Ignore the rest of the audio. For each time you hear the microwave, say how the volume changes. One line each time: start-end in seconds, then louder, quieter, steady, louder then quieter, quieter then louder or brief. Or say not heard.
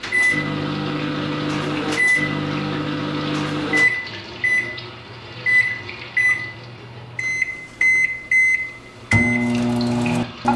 0.0-10.5 steady.